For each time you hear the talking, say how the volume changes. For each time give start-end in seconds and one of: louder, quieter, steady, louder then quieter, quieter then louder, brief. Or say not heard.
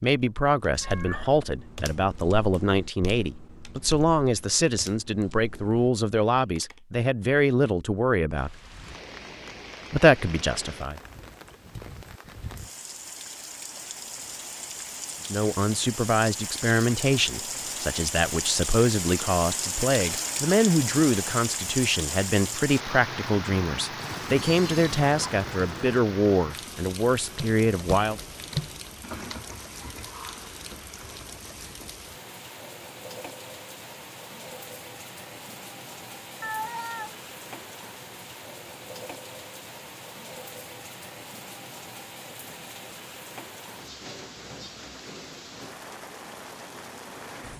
0.0-8.6 steady
9.9-11.0 brief
15.2-28.2 steady.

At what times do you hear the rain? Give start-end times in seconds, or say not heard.
8.3-47.5.